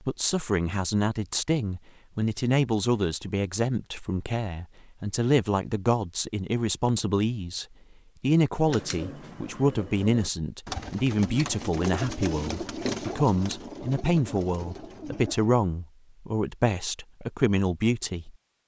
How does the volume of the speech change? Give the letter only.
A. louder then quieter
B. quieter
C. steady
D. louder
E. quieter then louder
C.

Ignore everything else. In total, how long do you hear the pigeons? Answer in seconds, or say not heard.
7 s.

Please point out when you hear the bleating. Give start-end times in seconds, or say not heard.
not heard.